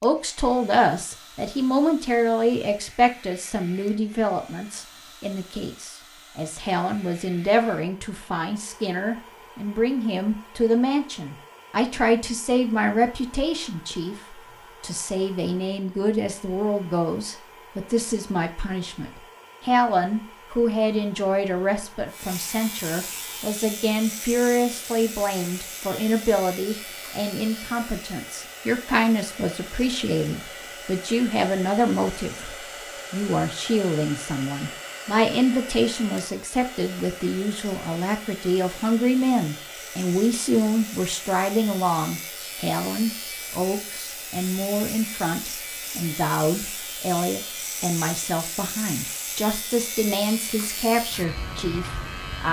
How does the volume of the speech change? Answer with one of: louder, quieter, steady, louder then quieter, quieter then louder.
steady.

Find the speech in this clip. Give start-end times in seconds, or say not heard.
0.0-52.4.